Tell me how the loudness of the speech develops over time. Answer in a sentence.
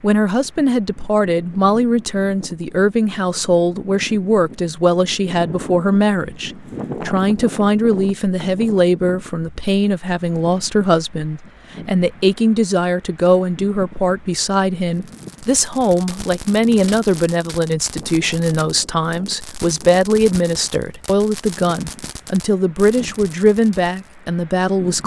The loudness of the speech stays about the same.